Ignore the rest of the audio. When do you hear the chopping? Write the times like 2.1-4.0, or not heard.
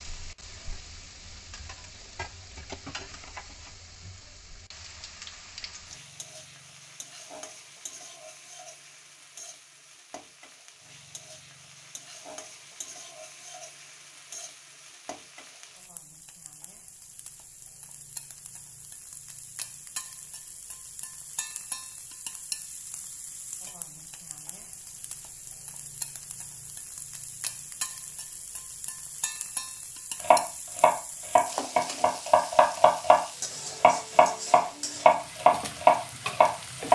30.2-36.9.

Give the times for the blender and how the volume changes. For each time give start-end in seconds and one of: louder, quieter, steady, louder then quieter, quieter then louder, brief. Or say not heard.
not heard.